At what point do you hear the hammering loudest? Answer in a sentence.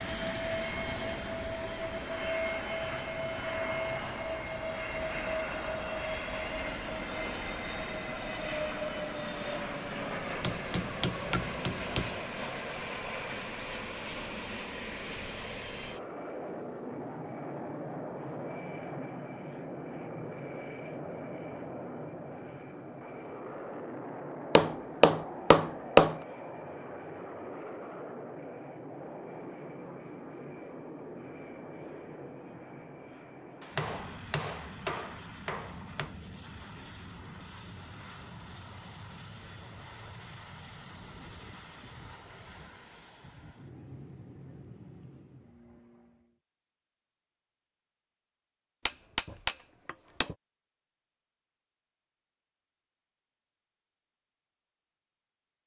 The loudest moment of the hammering is at 26 seconds.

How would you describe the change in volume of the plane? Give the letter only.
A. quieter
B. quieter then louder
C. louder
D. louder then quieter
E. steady
A.